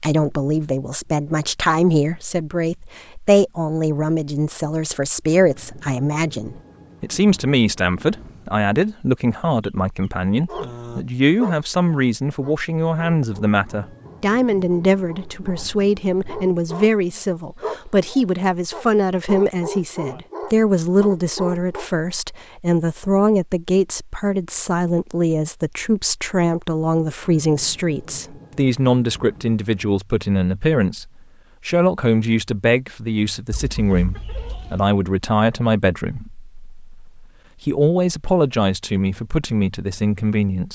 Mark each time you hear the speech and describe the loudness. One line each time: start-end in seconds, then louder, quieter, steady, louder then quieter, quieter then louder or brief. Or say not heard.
0.0-40.7 steady.